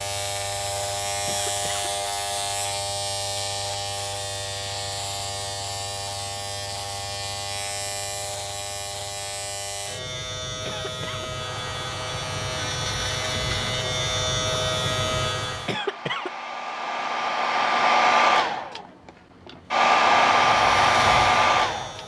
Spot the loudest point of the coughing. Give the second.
16 s.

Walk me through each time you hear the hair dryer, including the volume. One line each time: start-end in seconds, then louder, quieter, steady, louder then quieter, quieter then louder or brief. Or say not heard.
11.4-22.0 louder.